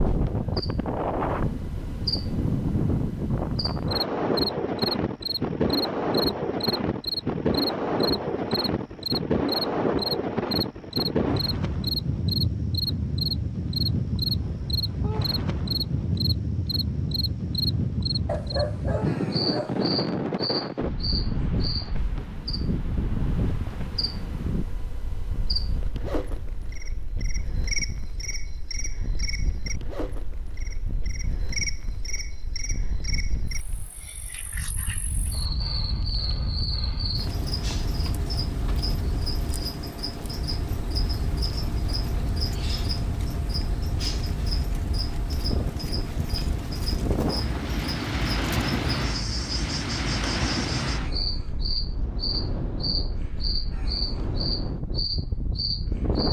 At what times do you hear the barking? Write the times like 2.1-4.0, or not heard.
18.2-19.9.